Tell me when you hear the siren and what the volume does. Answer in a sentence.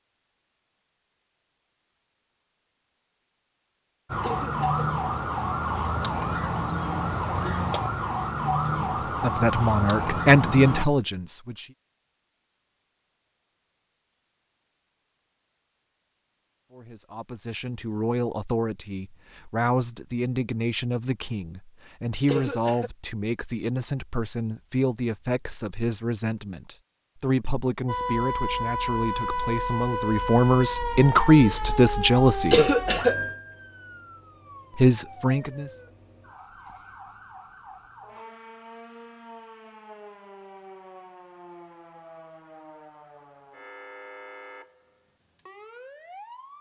The siren can be heard from 4.1 to 10.8 s, at a steady volume; and from 27.9 to 46.5 s, getting quieter.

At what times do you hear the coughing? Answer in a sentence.
You can hear the coughing from 4.2 to 4.8 s, from 22.2 to 22.9 s and from 32.5 to 33.1 s.